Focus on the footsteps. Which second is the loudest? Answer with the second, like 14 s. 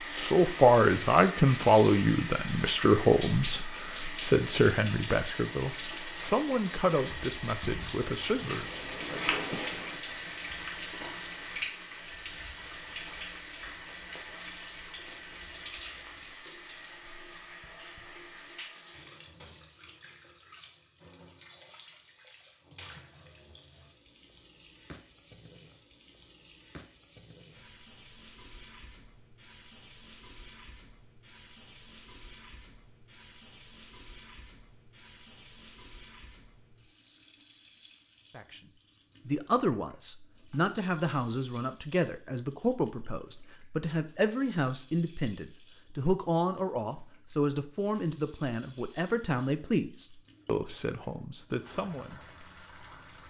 9 s.